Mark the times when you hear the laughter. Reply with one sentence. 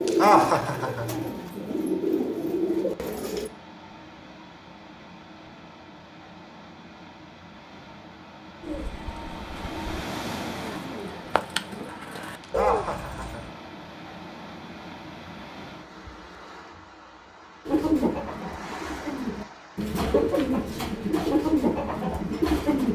The laughter can be heard from 0.1 to 1.3 s and from 12.4 to 13.5 s.